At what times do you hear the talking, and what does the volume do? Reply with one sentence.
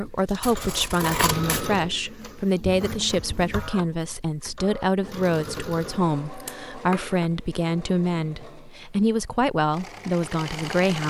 You can hear the talking from 0.0 to 11.0 s, at a steady volume.